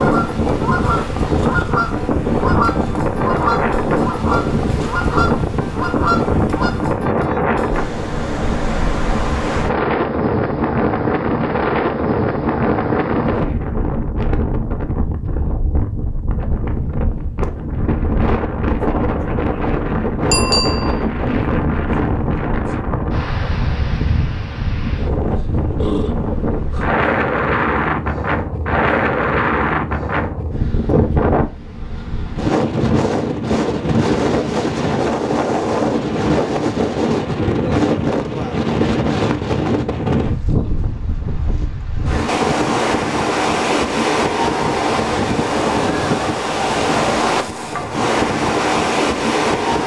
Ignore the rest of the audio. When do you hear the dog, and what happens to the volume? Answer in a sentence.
The dog can't be heard in this clip.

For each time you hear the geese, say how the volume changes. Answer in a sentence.
The geese can be heard from 0.0 to 7.0 s, at a steady volume.